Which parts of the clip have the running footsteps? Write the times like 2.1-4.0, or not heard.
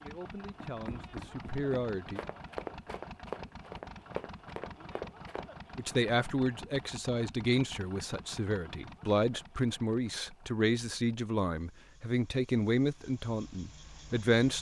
0.6-5.5.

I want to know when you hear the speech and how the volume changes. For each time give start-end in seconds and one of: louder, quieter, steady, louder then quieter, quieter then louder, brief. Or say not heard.
0.0-2.2 brief
5.8-14.5 steady.